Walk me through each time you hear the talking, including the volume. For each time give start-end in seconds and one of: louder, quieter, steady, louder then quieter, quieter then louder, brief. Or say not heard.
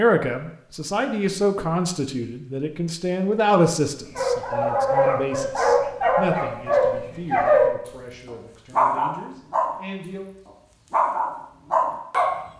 0.0-10.2 quieter.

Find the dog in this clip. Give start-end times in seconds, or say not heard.
4.2-7.7, 8.3-9.8, 10.4-12.3.